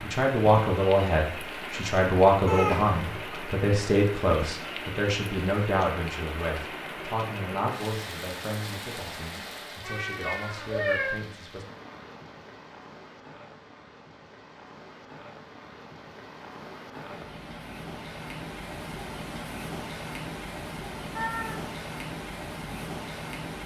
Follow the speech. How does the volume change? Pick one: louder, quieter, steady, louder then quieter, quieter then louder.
quieter.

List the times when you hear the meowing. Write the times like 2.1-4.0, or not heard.
2.5-3.0, 9.8-11.2, 21.1-21.8.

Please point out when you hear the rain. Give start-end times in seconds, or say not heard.
0.0-23.6.